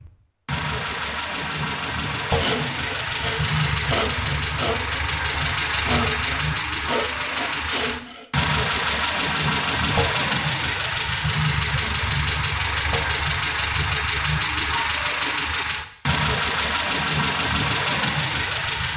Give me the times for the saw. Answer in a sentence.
You can hear the saw from 2.4 to 8.3 s.